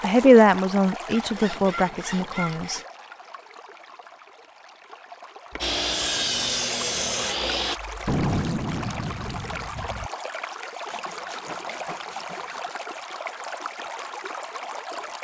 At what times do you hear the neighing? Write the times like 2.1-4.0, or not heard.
not heard.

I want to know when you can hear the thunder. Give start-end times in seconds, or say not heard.
8.1-10.1.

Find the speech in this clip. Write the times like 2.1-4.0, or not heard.
0.0-2.8.